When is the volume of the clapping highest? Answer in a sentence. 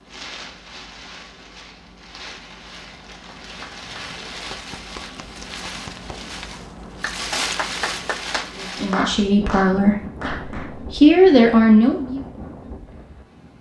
The volume of the clapping peaks at 9 seconds.